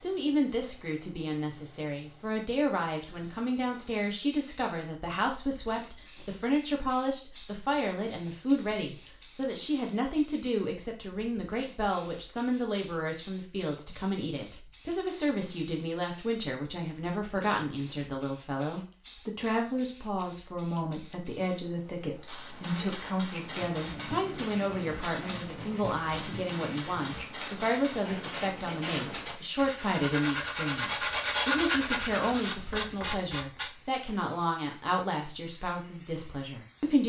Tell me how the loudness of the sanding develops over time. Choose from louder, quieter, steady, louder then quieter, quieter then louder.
louder.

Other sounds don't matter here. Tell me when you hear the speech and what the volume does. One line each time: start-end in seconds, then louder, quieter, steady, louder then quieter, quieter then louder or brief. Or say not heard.
0.0-37.0 steady.